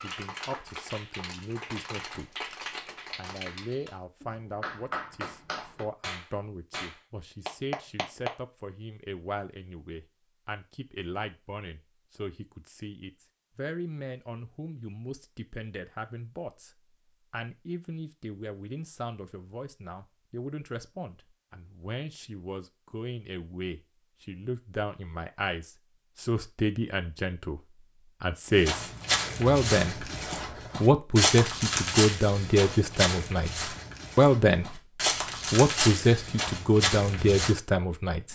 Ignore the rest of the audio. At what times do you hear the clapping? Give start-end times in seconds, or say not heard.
0.0-8.3.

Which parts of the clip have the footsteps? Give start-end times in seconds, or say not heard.
28.6-37.5.